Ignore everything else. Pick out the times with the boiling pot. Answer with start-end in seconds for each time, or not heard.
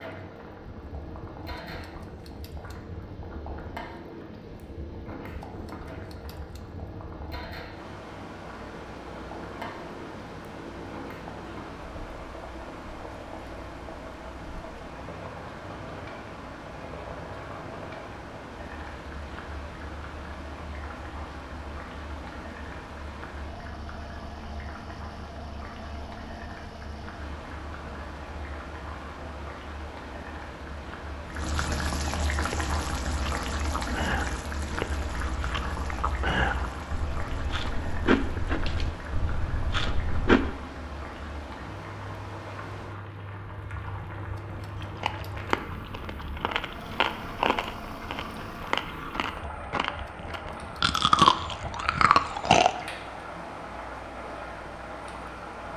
0.0-55.7.